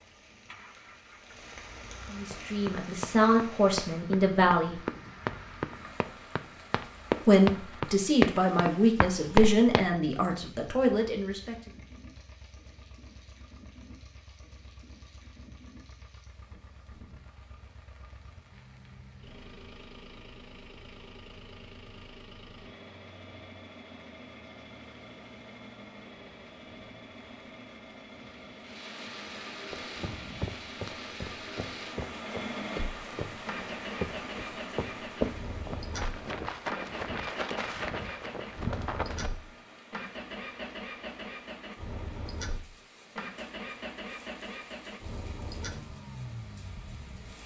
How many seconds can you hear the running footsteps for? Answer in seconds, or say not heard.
17 s.